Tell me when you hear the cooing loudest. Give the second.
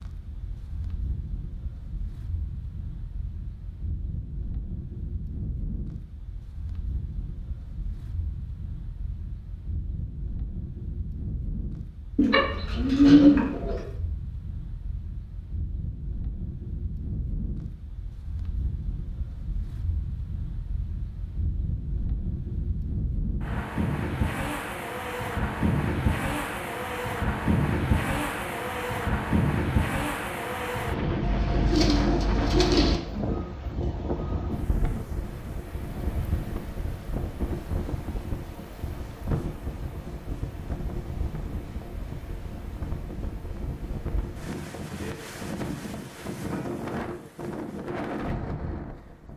13 s.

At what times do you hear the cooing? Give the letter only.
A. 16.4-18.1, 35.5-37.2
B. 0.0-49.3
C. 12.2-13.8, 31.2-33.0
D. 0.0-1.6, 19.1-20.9
C.